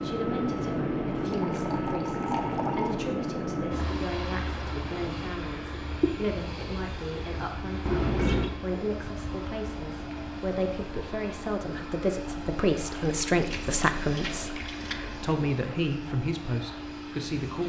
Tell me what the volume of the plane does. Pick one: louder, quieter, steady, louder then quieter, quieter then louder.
quieter.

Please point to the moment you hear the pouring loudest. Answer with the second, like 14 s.
8 s.